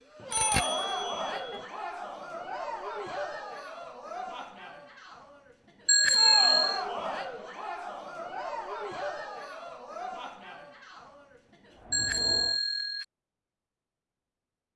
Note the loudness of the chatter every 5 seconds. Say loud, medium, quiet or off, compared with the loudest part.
loud, loud, medium.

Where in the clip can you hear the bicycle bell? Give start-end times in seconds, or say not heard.
0.3-1.6, 5.8-6.8, 11.9-13.1.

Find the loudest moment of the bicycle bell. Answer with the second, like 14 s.
6 s.